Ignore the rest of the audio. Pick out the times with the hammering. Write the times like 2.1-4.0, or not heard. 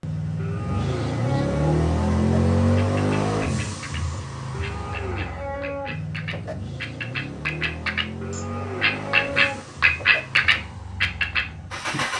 not heard.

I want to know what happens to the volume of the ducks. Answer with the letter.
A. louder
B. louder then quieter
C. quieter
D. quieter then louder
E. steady
A.